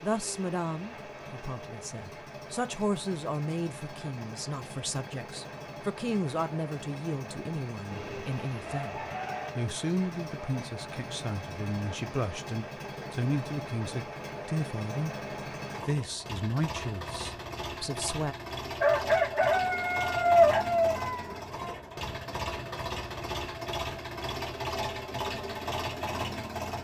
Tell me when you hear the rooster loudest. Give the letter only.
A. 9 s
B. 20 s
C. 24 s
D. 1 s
B.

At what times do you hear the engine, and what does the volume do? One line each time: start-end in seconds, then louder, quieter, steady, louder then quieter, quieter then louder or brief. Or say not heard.
0.0-26.7 louder.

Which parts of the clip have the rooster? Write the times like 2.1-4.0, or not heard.
7.9-9.6, 18.8-21.8.